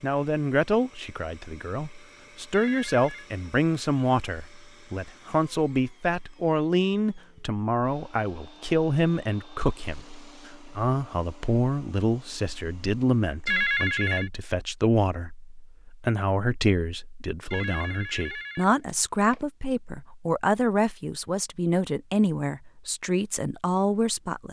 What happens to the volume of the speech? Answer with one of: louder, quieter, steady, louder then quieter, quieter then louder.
steady.